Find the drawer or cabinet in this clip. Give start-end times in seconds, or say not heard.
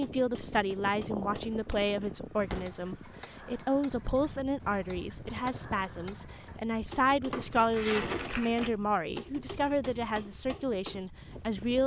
1.6-2.8, 7.3-8.8.